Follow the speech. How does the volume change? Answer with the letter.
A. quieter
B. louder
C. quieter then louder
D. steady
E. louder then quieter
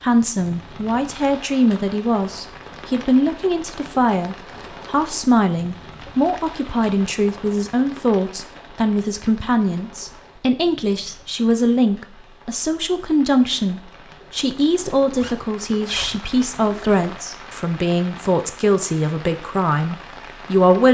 D.